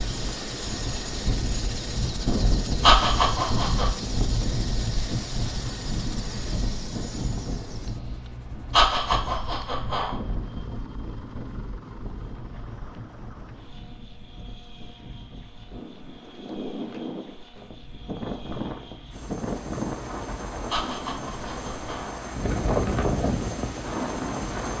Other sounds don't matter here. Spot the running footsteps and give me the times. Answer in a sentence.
You can't hear the running footsteps here.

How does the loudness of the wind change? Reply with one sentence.
The loudness of the wind goes down, then up.